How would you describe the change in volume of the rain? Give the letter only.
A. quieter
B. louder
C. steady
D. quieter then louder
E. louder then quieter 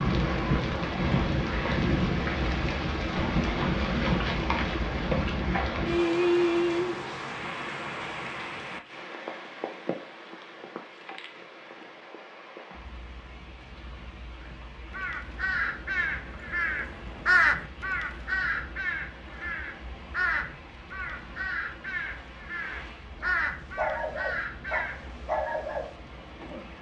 A.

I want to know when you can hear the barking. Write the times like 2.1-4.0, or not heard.
23.2-26.7.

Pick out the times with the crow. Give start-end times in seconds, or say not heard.
14.4-25.1.